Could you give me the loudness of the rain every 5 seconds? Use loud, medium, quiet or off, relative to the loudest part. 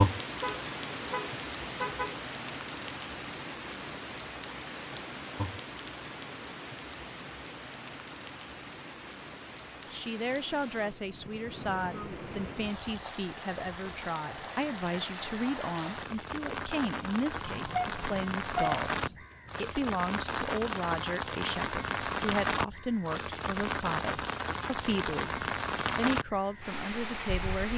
loud, medium, medium, loud, loud, loud.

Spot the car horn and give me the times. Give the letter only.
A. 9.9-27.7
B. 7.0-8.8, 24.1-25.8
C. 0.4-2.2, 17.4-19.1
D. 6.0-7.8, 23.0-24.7
C.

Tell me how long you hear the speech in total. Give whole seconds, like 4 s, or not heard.
18 s.